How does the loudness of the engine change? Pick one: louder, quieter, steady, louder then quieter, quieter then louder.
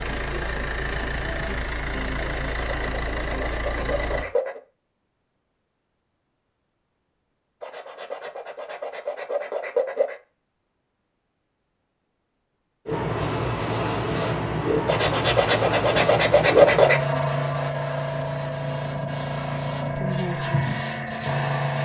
steady.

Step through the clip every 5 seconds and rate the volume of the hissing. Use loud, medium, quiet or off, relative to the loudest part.
off, off, loud, loud, loud.